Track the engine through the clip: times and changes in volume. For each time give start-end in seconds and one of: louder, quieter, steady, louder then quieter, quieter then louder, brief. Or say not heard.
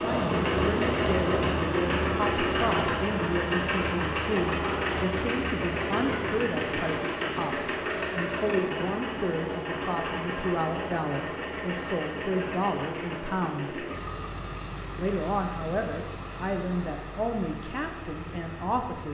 0.0-19.0 quieter.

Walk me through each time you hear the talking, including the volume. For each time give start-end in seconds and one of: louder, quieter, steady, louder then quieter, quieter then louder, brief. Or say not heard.
0.0-13.8 steady
14.9-19.0 quieter.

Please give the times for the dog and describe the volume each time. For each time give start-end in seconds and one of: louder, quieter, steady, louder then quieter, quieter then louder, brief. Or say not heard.
not heard.